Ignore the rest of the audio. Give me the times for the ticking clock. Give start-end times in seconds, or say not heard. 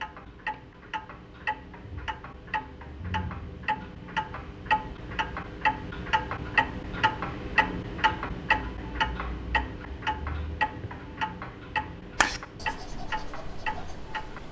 0.0-14.4.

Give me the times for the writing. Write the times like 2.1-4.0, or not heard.
12.2-14.4.